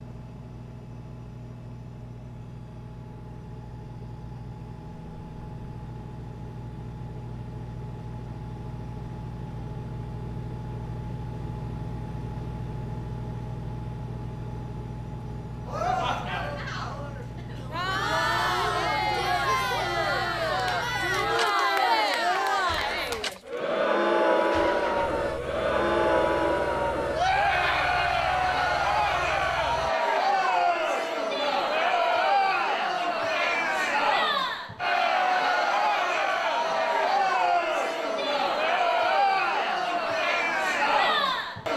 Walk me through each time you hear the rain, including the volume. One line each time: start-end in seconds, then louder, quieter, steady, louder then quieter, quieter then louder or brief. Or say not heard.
not heard.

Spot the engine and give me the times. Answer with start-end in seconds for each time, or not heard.
0.0-29.9.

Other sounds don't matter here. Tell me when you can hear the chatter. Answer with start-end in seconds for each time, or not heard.
15.7-41.7.